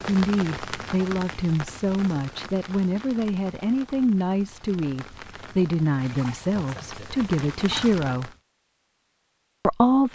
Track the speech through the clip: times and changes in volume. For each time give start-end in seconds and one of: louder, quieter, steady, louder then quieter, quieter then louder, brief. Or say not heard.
0.1-8.3 steady
9.6-10.1 brief.